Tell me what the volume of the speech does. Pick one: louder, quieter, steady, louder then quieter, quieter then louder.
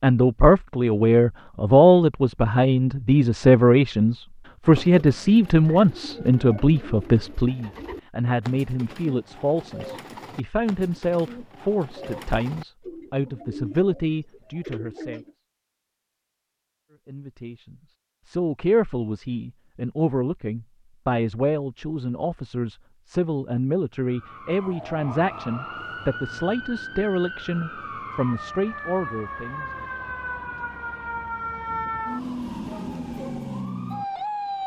quieter.